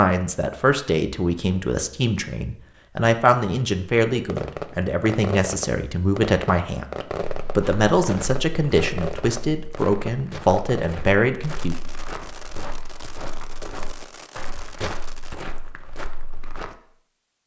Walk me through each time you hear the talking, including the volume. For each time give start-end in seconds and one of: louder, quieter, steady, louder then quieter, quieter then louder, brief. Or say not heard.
0.0-11.8 steady.